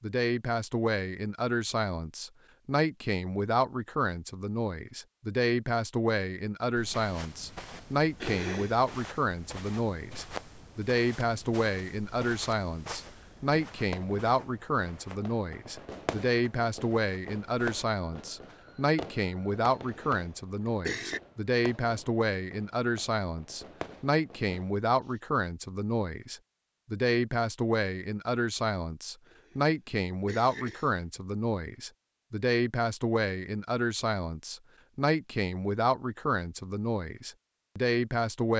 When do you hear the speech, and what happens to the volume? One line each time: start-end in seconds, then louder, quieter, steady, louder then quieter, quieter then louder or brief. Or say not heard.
0.0-38.5 steady.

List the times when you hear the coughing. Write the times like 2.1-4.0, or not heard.
8.2-8.8, 19.9-21.2, 29.2-31.1.